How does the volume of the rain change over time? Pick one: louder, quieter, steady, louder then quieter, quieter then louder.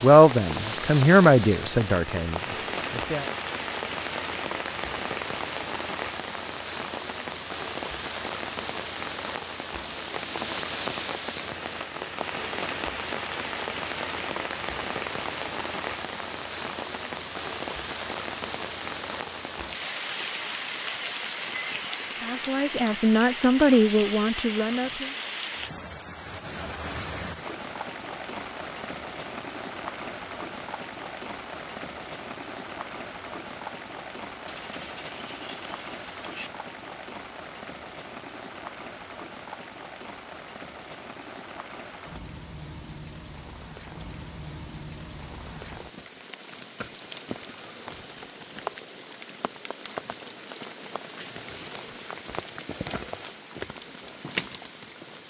quieter.